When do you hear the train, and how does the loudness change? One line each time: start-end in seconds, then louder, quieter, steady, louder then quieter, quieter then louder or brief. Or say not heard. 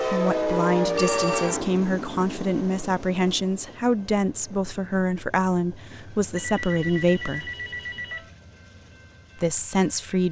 0.0-10.2 quieter.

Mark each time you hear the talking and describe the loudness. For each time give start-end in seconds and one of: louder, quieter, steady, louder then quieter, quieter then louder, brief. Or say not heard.
0.0-7.5 steady
9.3-10.2 brief.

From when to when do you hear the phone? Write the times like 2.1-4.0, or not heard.
0.9-1.6, 6.3-8.3.